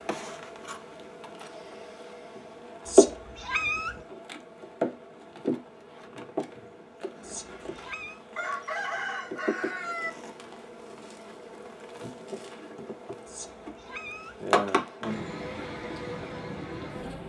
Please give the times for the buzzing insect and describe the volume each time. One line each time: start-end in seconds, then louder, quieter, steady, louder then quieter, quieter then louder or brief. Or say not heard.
0.0-17.2 quieter then louder.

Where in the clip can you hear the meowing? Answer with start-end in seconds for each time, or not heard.
2.9-4.0, 7.2-8.2, 13.2-14.4.